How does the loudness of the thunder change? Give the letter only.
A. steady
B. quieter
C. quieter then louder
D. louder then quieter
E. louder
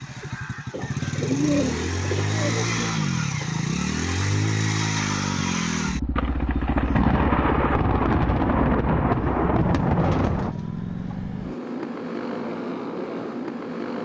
A.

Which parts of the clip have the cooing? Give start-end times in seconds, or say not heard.
0.7-2.9, 9.9-11.2.